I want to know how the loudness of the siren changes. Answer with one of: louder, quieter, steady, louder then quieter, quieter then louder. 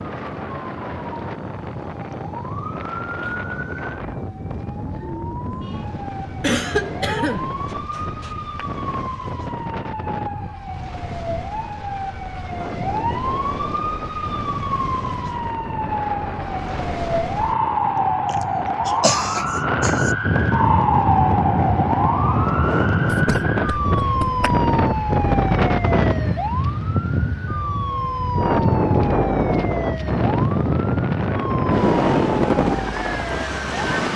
louder then quieter.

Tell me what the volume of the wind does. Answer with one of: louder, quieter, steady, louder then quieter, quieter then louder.
louder.